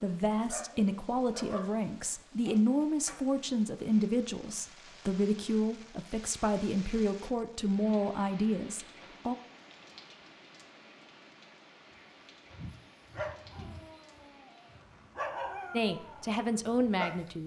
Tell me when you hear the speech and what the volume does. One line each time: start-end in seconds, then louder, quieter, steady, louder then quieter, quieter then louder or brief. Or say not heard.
0.0-9.3 steady
15.7-17.4 brief.